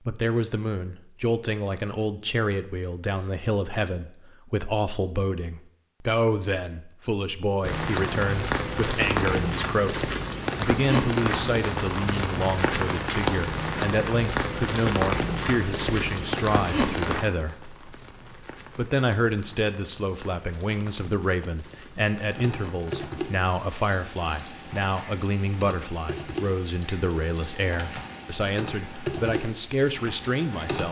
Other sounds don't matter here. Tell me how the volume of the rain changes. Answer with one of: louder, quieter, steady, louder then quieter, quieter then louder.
quieter.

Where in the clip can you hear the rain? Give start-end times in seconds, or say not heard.
7.6-30.8.